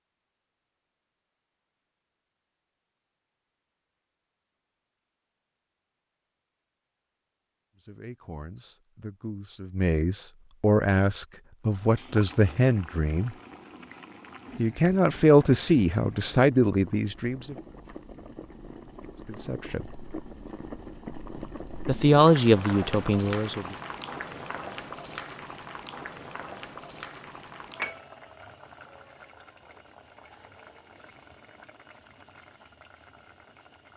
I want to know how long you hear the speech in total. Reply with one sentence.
The speech can be heard for 11 seconds in total.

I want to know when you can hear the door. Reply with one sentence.
The door can't be heard in this clip.